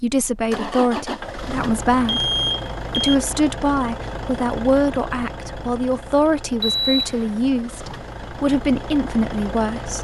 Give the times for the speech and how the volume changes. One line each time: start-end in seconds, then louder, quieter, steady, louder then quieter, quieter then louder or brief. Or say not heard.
0.0-9.9 steady.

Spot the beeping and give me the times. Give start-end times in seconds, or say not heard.
2.0-3.1, 6.6-7.3.